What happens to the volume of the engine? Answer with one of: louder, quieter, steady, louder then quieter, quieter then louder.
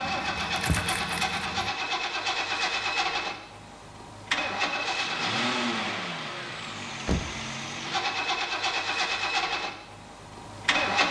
steady.